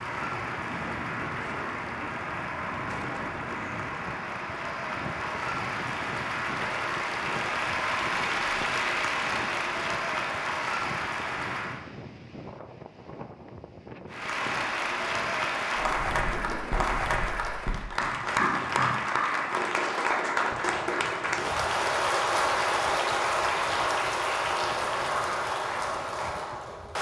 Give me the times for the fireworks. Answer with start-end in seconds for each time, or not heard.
not heard.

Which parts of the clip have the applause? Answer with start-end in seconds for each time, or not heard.
0.0-11.8, 14.1-26.9.